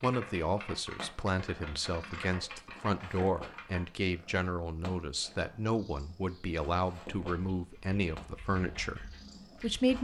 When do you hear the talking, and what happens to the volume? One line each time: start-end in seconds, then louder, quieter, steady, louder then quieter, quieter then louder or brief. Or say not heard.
0.0-9.9 steady.